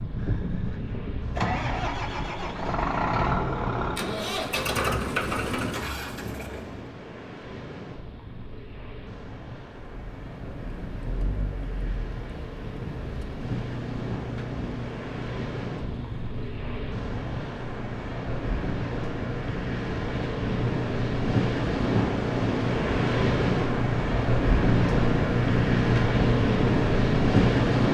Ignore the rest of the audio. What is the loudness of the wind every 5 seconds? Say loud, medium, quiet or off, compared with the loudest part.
quiet, quiet, quiet, medium, loud, loud.